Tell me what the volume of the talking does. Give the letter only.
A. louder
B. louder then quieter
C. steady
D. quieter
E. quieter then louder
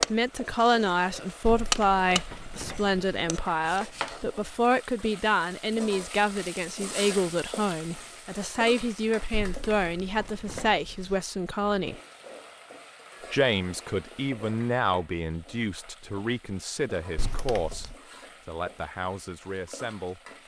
D.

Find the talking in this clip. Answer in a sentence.
The talking can be heard from 0.1 to 12.0 s and from 13.3 to 20.2 s.